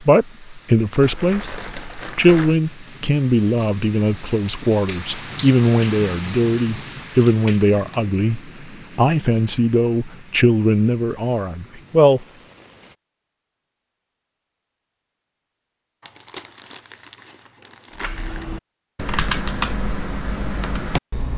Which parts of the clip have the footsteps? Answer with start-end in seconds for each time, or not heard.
not heard.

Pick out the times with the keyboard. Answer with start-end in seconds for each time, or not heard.
17.9-21.3.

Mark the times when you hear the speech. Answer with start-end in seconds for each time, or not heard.
0.0-12.2.